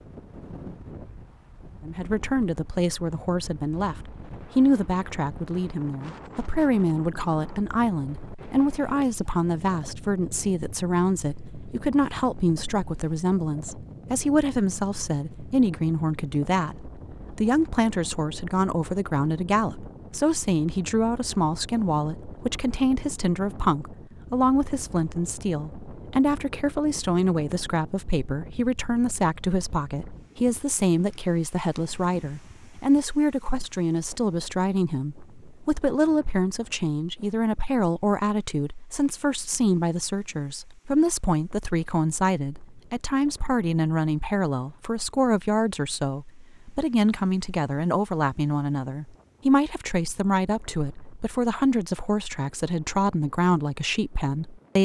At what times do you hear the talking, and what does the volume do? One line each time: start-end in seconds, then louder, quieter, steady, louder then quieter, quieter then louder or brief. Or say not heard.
1.9-54.8 steady.